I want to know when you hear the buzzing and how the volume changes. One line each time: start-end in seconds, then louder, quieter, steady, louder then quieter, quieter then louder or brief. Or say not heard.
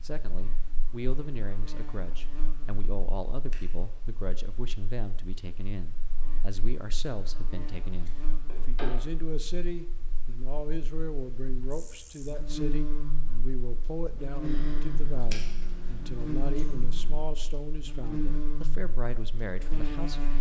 0.0-20.3 louder.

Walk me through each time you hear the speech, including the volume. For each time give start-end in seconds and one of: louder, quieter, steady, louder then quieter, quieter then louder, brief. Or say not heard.
0.0-20.3 steady.